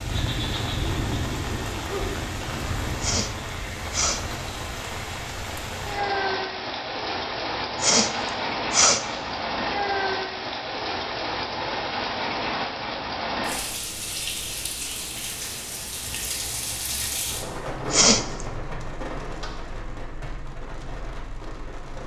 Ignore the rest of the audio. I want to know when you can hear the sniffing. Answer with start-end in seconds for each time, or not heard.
3.0-4.2, 7.8-9.1, 17.9-18.4.